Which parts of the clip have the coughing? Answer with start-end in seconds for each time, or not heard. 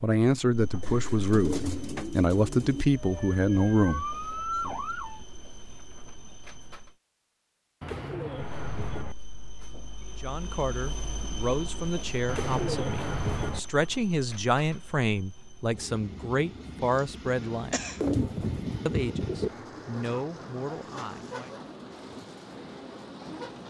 16.9-18.1.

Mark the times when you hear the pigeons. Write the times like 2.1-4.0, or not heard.
0.8-2.9, 7.8-9.2, 12.2-13.6, 17.9-19.5.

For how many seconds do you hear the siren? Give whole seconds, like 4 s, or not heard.
2 s.